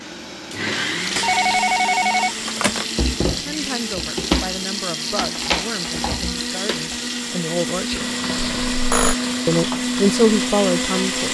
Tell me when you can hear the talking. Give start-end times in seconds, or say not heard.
3.4-8.1, 9.4-11.2.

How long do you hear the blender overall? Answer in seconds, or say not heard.
11 s.